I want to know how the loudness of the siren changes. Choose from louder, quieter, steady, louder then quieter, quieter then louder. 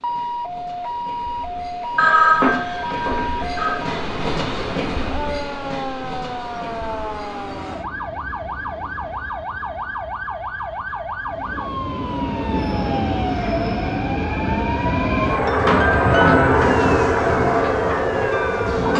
steady.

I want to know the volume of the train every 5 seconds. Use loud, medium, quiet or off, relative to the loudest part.
quiet, quiet, medium, loud.